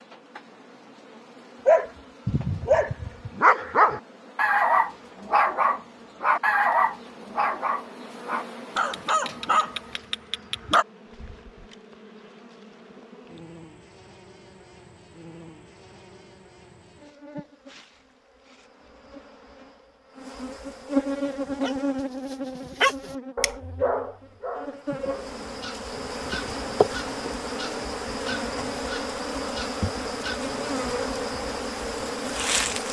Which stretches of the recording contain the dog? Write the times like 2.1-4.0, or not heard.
1.6-10.8, 21.5-30.4.